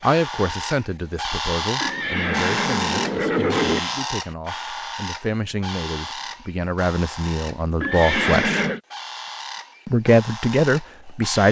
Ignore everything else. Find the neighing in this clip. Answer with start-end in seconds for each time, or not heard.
1.8-3.8, 7.8-8.8.